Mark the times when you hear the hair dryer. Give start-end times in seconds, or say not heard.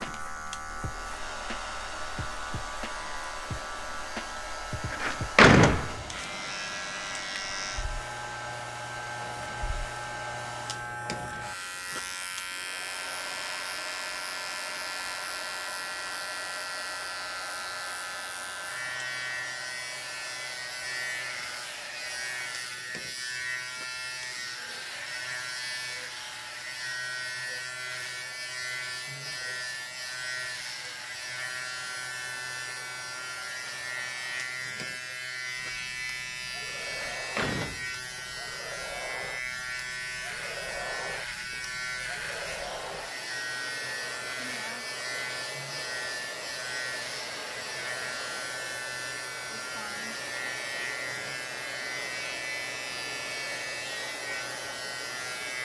0.0-55.5.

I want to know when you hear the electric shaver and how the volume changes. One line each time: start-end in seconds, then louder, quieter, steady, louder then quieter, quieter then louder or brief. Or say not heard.
0.0-55.5 steady.